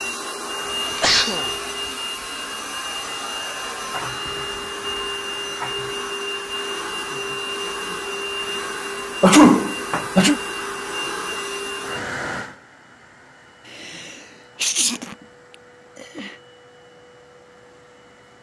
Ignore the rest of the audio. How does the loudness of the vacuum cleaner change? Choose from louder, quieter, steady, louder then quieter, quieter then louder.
quieter.